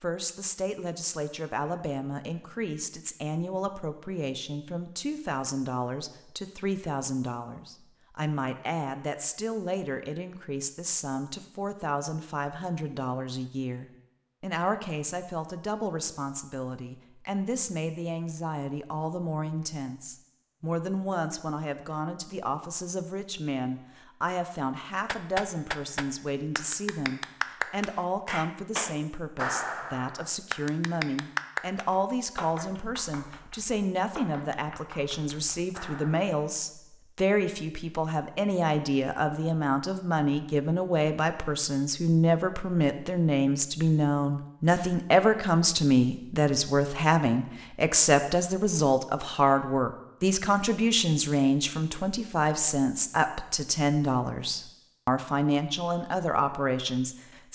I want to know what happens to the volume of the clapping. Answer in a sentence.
The loudness of the clapping goes down.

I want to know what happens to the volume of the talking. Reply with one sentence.
The loudness of the talking goes up.